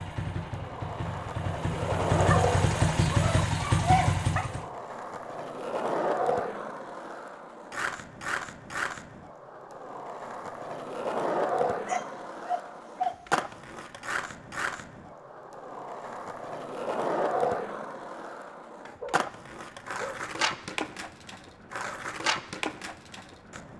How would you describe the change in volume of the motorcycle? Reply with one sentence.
The volume of the motorcycle goes up.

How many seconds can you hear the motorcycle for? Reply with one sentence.
You can hear the motorcycle for 5 seconds altogether.